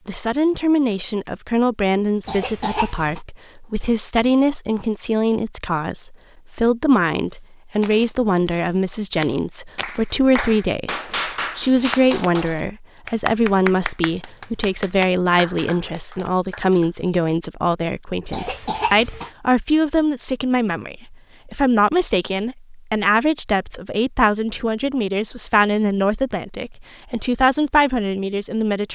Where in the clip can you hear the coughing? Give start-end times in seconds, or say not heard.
2.2-3.2, 18.3-19.3.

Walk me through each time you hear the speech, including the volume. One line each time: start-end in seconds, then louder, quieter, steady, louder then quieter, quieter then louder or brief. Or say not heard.
0.1-28.9 steady.